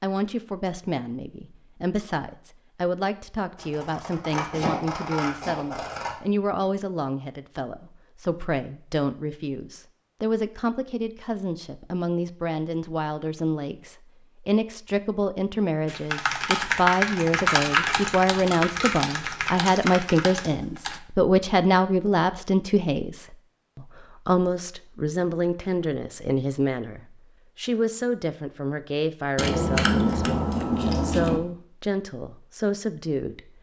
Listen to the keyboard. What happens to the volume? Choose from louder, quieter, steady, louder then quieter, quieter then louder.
quieter.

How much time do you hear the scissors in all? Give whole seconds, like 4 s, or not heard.
7 s.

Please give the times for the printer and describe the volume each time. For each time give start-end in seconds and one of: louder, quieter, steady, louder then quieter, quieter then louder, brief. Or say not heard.
not heard.